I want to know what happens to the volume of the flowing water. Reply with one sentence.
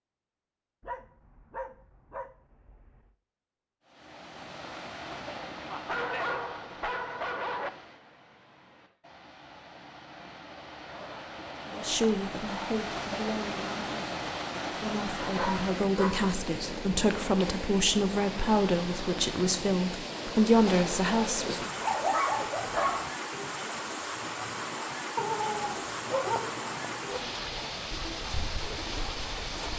The loudness of the flowing water goes up.